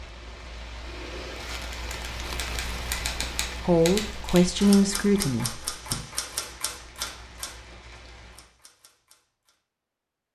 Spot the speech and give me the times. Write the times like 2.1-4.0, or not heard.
3.6-5.8.